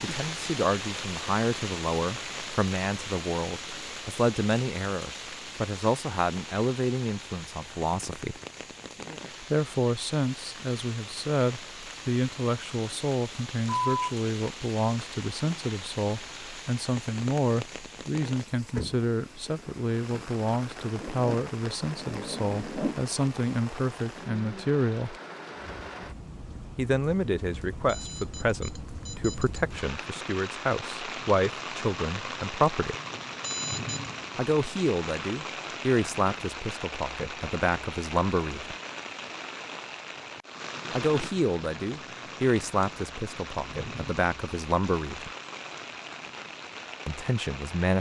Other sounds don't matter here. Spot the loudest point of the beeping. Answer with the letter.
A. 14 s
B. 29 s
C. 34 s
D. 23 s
A.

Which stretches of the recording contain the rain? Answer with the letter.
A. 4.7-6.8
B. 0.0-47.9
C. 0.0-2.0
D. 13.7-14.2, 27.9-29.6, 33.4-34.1
B.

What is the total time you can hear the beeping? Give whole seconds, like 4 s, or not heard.
3 s.